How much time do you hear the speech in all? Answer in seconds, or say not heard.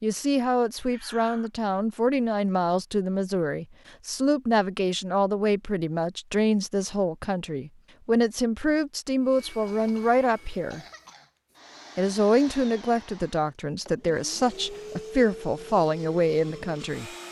16 s.